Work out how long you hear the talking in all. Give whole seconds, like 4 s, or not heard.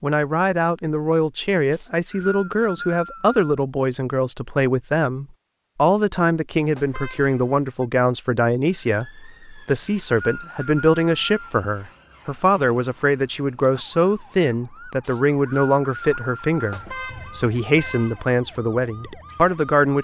20 s.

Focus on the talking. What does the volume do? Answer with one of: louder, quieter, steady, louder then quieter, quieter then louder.
steady.